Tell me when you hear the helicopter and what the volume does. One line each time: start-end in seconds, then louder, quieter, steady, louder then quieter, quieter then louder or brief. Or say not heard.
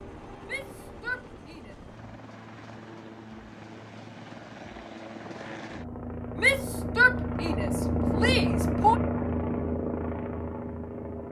0.0-11.2 louder.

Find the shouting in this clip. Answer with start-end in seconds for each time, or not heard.
0.5-1.8, 6.3-9.0.